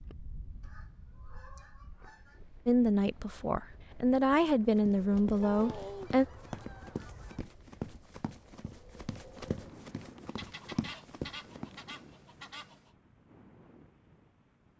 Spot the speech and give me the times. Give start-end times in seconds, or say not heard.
2.6-6.2.